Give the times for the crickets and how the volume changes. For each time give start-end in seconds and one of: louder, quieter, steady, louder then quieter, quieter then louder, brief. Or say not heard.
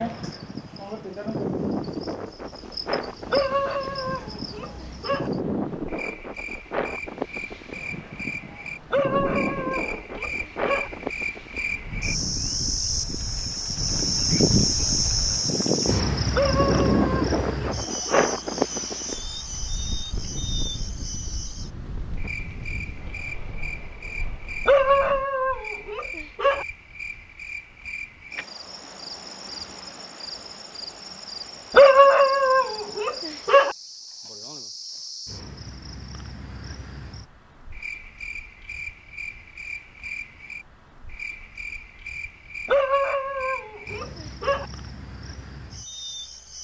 0.0-46.5 louder then quieter.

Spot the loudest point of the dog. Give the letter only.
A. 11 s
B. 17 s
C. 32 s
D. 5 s
C.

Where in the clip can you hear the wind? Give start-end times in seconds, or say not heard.
0.0-25.2.